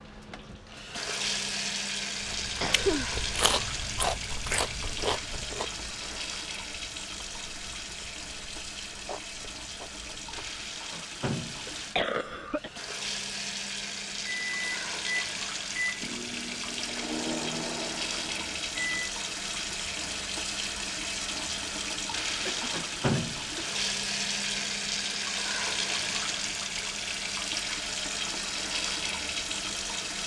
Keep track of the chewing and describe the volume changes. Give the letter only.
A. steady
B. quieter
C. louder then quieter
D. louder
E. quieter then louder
E.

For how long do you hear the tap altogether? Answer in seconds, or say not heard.
30 s.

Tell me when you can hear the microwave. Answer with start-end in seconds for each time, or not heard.
14.1-19.1.